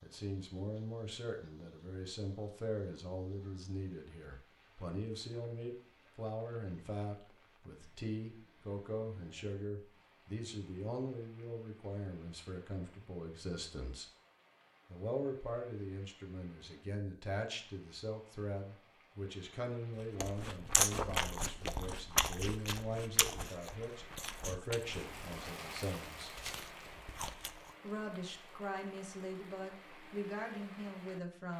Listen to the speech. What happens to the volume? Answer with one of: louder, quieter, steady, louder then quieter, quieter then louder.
steady.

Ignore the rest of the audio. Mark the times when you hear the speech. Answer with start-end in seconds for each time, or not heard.
0.0-14.1, 14.8-26.3, 27.8-31.5.